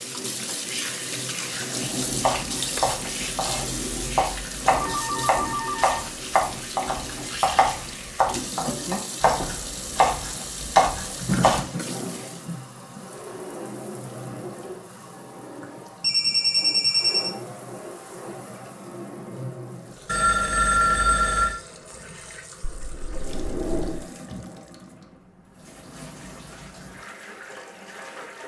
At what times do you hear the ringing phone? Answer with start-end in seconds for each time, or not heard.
4.8-6.0, 16.0-17.3, 20.1-21.6.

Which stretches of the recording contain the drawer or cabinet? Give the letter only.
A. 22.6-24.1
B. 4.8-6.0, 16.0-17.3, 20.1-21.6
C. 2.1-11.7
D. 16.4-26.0
A.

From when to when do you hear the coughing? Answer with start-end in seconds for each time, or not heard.
not heard.